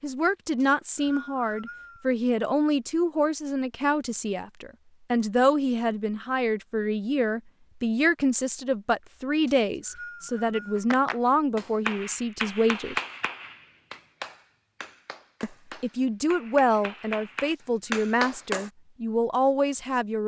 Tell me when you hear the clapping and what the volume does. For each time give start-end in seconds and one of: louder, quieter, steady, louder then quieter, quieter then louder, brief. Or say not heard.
10.8-18.7 quieter then louder.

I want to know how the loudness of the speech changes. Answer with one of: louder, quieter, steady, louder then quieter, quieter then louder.
steady.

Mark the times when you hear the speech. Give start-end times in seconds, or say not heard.
0.0-12.9, 15.4-20.2.